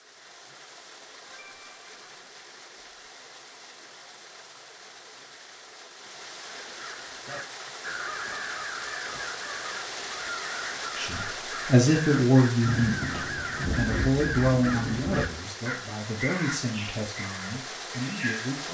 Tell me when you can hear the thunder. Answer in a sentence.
You can hear the thunder from 12.6 to 15.3 s.